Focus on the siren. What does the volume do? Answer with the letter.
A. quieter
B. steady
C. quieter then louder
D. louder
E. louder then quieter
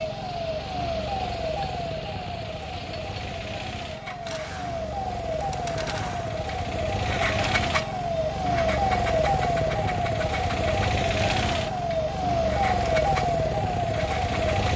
D.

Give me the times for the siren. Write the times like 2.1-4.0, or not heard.
0.0-14.7.